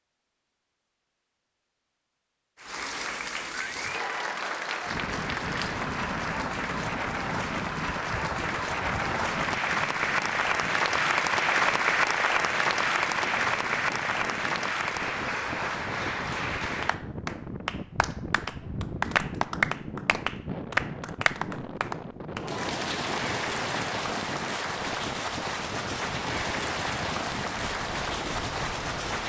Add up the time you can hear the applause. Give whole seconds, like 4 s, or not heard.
27 s.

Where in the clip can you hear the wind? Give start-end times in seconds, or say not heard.
4.8-29.2.